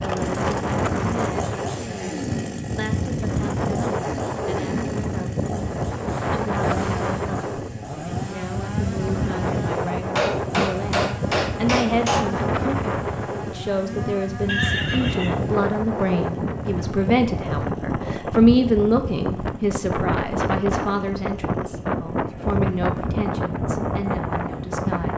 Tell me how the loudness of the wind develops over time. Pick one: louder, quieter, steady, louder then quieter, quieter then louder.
steady.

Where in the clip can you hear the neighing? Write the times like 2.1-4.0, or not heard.
14.4-15.5.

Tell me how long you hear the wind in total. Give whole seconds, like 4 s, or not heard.
25 s.